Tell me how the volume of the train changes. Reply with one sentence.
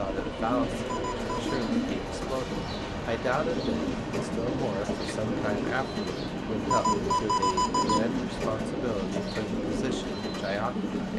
The loudness of the train stays about the same.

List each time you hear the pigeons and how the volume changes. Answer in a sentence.
You can hear the pigeons from 0.0 to 11.1 s, at a steady volume.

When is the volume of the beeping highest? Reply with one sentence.
The loudest moment of the beeping is at 7 seconds.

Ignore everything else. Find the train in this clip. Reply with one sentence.
You can hear the train from 0.0 to 11.1 s.